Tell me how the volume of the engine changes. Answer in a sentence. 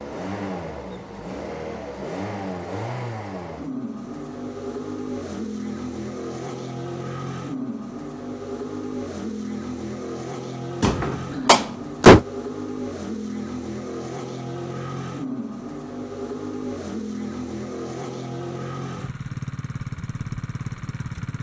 The loudness of the engine stays about the same.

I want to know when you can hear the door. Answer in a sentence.
The door can be heard from 10.8 to 12.2 s.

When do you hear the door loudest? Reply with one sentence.
The loudest moment of the door is at 12 seconds.